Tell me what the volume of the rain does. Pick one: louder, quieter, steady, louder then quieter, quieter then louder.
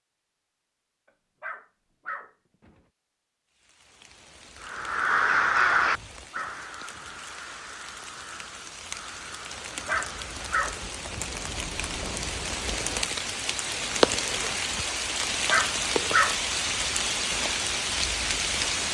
louder.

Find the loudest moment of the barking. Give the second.
16 s.